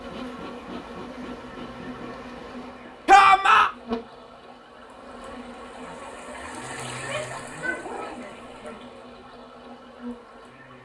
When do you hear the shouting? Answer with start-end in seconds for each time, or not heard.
3.0-3.7, 7.0-8.8.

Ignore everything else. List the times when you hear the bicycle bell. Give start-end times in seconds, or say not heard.
not heard.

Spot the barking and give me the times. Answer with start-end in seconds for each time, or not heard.
7.5-8.8.